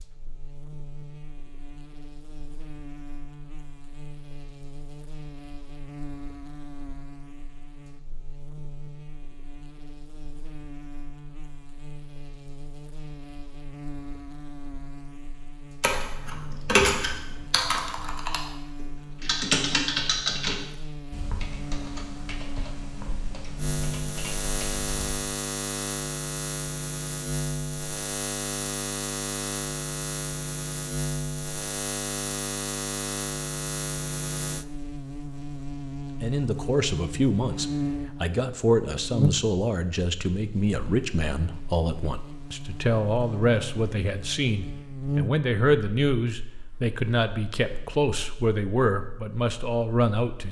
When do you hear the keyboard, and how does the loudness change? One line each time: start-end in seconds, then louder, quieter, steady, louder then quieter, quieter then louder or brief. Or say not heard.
15.8-24.9 quieter.